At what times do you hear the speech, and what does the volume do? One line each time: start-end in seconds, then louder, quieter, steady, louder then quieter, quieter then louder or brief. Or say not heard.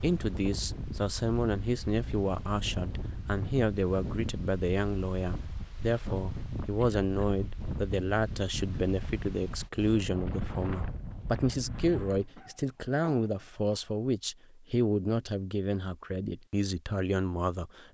0.0-17.8 steady.